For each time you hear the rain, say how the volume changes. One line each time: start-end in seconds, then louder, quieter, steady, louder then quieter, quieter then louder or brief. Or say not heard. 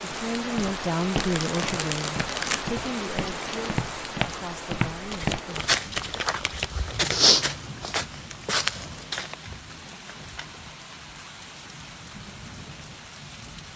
0.0-13.7 quieter.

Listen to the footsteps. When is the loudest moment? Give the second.
7 s.